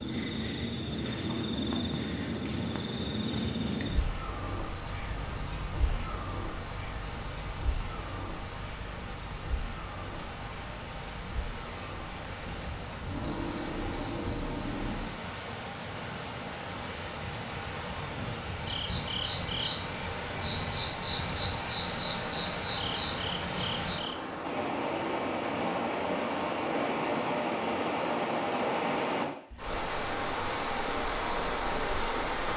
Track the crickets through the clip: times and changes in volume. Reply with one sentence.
The crickets can be heard from 0.0 to 32.5 s, getting quieter.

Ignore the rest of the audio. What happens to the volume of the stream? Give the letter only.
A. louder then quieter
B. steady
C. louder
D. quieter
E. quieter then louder
C.